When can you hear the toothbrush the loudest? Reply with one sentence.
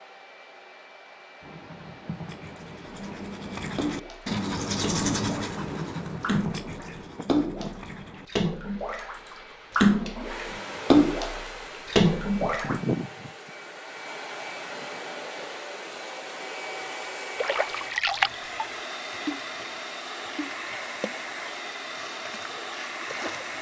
The loudest moment of the toothbrush is at 5 seconds.